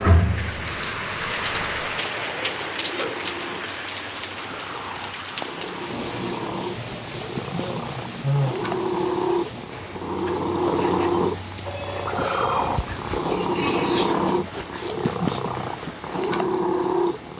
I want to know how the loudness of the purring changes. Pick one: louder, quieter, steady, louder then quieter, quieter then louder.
louder.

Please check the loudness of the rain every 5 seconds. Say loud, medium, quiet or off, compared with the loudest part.
loud, medium, quiet, off.